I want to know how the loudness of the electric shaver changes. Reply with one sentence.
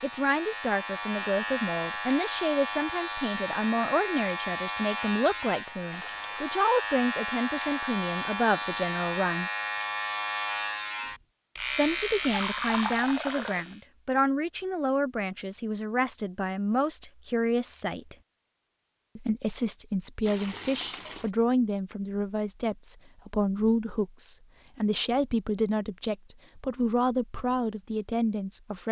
The volume of the electric shaver stays about the same.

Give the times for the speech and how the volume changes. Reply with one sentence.
The speech can be heard from 0.0 to 9.5 s, at a steady volume; from 11.8 to 18.1 s, at a steady volume; and from 19.1 to 28.8 s, at a steady volume.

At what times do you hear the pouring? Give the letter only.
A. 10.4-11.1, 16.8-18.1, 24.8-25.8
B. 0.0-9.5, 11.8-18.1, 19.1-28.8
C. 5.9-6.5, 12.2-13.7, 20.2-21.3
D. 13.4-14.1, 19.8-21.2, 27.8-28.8
C.